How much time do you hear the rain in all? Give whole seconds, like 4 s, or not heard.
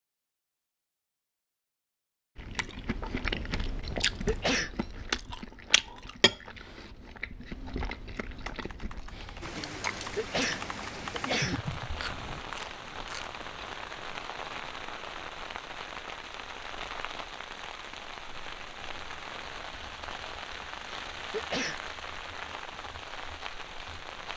15 s.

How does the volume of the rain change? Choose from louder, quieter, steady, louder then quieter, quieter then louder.
steady.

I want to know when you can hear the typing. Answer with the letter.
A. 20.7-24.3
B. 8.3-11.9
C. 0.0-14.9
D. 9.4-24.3
B.